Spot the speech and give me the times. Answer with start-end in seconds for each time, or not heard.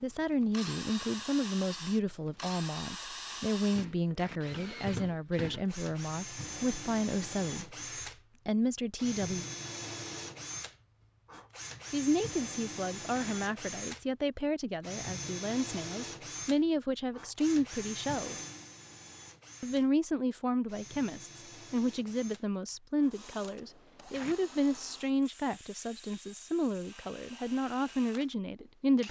0.0-7.8, 8.4-9.4, 11.9-18.4, 19.6-29.0.